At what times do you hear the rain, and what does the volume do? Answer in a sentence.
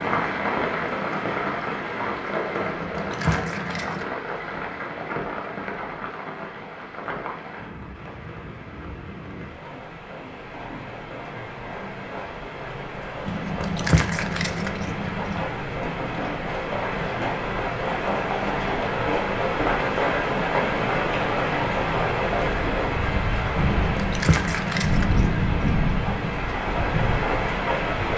The rain can be heard from 0.0 to 28.1 s, getting quieter then louder.